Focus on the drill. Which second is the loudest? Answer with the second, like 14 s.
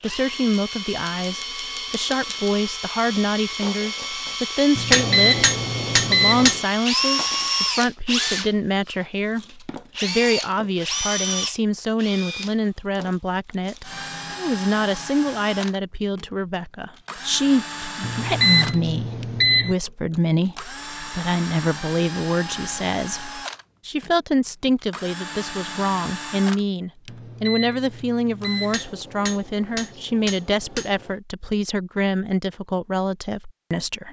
7 s.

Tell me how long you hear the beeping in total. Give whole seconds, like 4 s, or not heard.
5 s.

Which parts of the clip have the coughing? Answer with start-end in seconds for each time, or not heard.
not heard.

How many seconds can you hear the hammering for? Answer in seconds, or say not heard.
4 s.